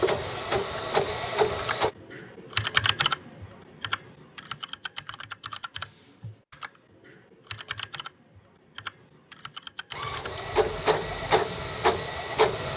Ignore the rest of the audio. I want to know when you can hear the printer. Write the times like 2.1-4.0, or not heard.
0.0-1.9, 9.9-12.7.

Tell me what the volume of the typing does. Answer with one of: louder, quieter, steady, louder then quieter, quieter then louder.
quieter.